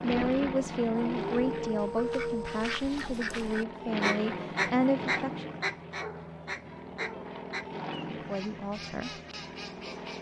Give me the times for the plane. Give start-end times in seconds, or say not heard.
0.0-10.1.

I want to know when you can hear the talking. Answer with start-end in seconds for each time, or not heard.
0.0-5.5, 8.1-9.1.